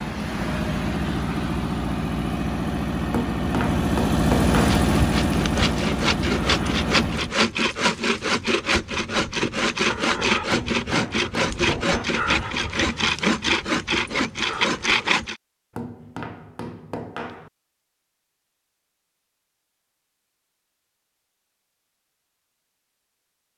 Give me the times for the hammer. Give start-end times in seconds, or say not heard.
3.1-4.8, 10.5-12.1, 15.8-17.5.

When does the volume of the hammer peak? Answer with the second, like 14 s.
4 s.